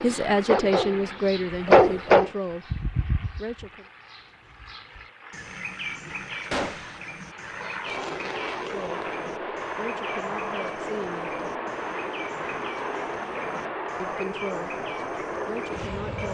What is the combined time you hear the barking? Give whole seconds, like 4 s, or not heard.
2 s.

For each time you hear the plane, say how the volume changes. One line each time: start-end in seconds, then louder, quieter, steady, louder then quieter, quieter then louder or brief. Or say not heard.
0.0-16.2 louder.